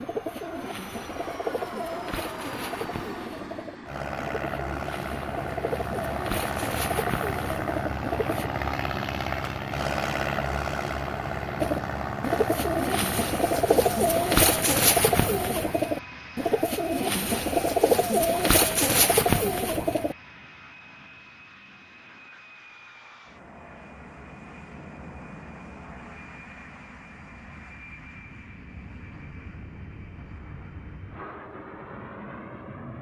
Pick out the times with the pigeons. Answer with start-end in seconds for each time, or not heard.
0.0-8.5, 11.6-20.1.